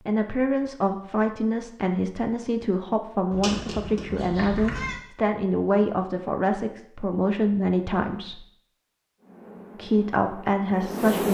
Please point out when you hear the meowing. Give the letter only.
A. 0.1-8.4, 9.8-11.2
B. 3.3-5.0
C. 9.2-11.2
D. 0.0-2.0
B.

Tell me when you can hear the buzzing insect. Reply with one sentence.
The buzzing insect can be heard from 9.2 to 11.2 s.